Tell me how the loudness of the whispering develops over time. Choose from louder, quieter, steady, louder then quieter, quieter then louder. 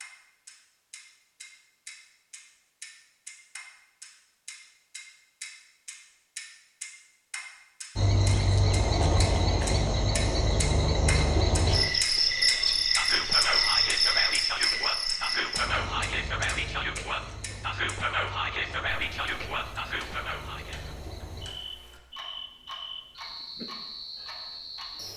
steady.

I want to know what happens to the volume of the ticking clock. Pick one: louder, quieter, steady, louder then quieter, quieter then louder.
louder then quieter.